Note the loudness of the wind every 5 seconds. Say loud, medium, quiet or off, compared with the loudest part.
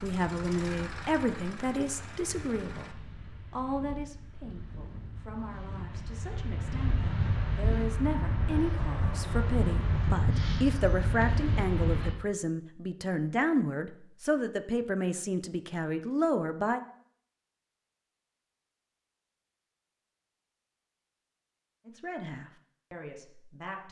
quiet, loud, loud, off, off.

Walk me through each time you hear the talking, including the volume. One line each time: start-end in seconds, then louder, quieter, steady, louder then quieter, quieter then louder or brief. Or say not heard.
0.0-16.8 quieter then louder
21.9-23.8 brief.